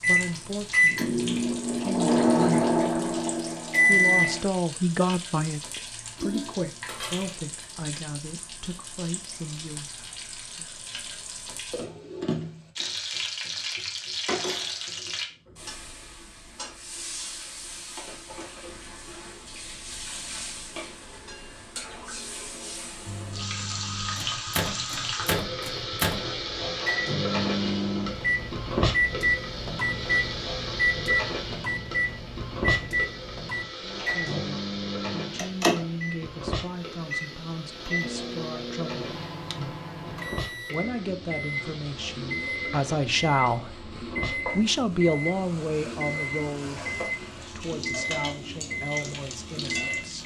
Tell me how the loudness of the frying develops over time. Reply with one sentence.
The loudness of the frying goes up, then down.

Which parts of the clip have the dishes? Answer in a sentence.
You can hear the dishes from 6.2 to 7.5 s.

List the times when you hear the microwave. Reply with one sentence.
You can hear the microwave from 0.0 to 4.5 s and from 23.1 to 50.2 s.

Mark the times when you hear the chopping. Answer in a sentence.
The chopping can't be heard in this clip.